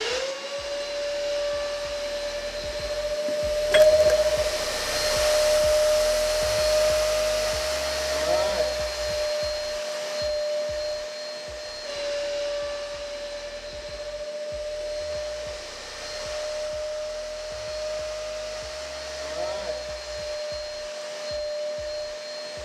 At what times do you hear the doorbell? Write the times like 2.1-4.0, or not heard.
3.2-5.0.